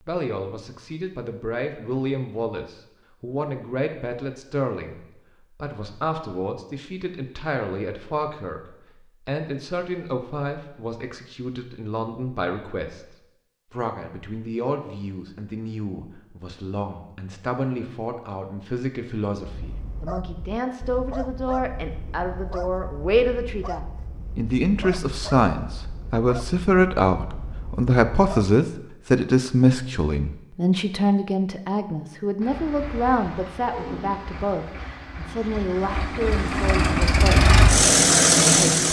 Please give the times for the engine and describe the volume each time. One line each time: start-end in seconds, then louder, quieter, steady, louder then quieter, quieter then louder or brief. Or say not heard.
32.4-38.8 louder.